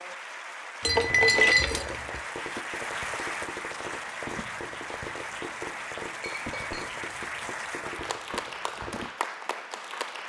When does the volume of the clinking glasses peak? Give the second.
1 s.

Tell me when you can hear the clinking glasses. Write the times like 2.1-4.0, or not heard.
0.8-2.2, 6.2-7.0.